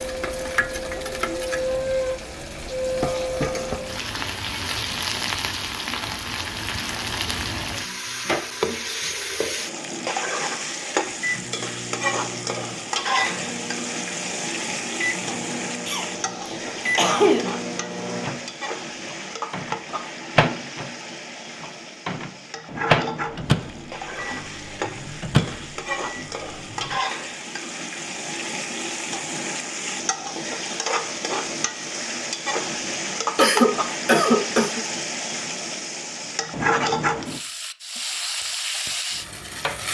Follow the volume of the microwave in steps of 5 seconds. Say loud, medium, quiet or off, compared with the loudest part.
off, off, medium, medium, loud, loud, off, off.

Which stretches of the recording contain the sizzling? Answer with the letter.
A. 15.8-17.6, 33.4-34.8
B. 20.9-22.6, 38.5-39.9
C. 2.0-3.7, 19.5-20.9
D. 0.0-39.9
D.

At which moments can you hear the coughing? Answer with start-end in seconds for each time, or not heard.
15.8-17.6, 33.4-34.8.